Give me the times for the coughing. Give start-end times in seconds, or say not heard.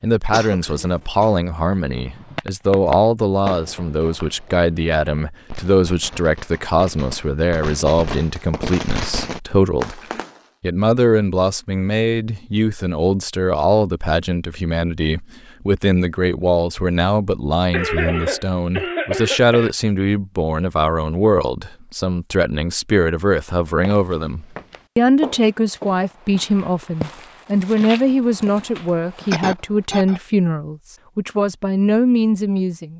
0.3-1.4, 17.7-19.7, 29.3-30.2.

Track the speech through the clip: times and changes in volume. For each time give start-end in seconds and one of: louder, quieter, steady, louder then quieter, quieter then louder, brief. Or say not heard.
0.0-10.0 steady
10.6-32.9 steady.